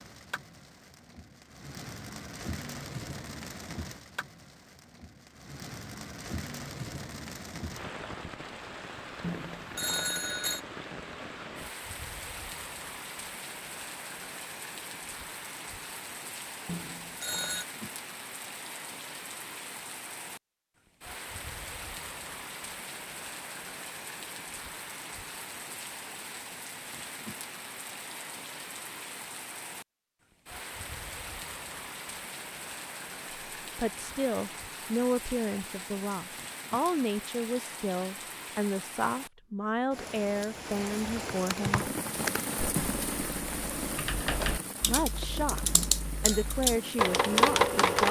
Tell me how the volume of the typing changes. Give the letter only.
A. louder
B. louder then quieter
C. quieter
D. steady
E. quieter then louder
E.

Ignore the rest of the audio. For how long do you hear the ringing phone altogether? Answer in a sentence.
The ringing phone can be heard for 3 seconds in total.